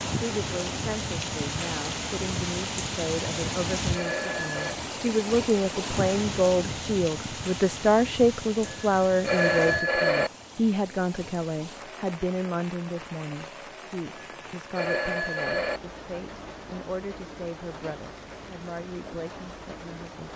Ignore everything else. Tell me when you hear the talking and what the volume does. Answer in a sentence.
You can hear the talking from 0.1 to 20.3 s, getting louder then quieter.